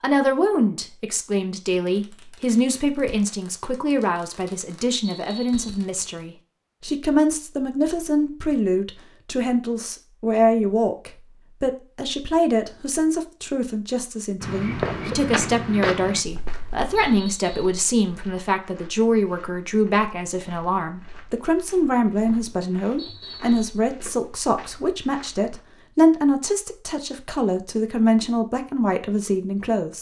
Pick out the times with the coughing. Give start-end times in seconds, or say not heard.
not heard.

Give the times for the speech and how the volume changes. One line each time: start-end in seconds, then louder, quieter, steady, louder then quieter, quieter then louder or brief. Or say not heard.
0.0-29.9 steady.